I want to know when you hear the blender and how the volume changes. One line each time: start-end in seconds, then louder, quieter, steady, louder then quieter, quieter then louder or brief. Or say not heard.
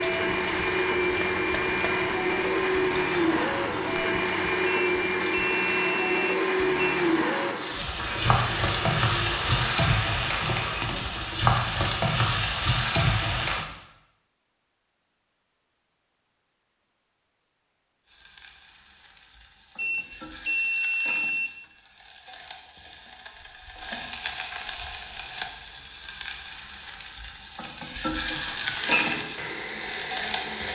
0.0-10.9 quieter
28.3-30.7 brief.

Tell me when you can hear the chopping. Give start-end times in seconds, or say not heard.
not heard.